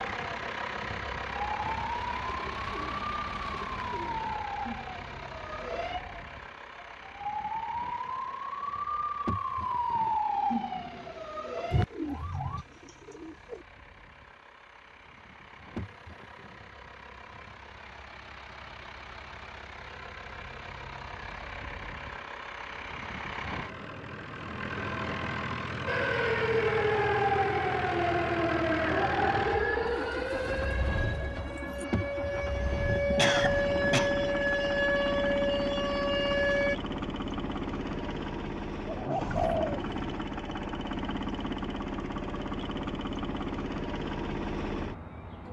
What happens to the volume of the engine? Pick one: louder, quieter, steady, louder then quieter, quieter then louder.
quieter then louder.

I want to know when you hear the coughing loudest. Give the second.
33 s.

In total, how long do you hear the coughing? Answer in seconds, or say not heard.
4 s.